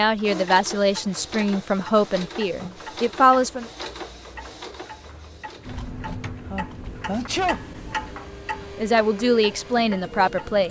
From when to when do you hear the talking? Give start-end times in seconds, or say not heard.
0.0-3.6, 8.8-10.6.